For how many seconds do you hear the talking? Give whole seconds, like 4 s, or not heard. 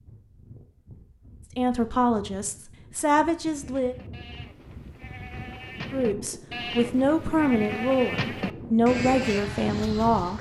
7 s.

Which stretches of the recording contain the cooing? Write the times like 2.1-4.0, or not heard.
not heard.